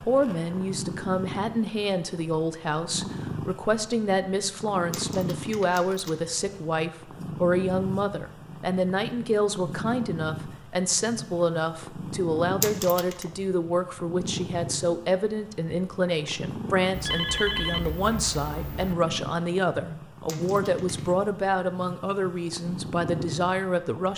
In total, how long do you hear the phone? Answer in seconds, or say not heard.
2 s.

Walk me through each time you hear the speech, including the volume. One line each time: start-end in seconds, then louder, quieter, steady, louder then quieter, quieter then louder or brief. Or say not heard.
0.0-24.1 steady.